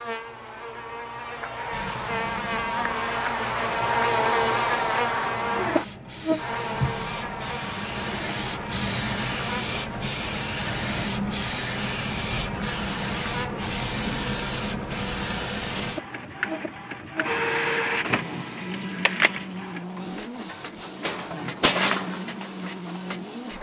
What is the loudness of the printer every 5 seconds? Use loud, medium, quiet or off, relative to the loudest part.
medium, loud, loud, loud, loud.